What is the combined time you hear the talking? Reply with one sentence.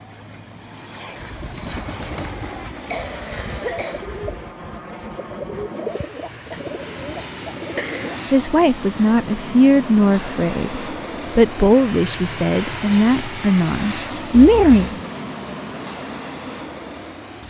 You can hear the talking for 7 seconds altogether.